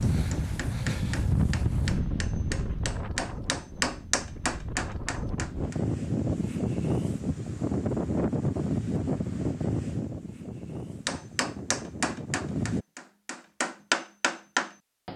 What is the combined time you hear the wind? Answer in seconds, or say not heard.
13 s.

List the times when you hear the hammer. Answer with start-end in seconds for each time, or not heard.
0.0-5.8, 11.1-15.1.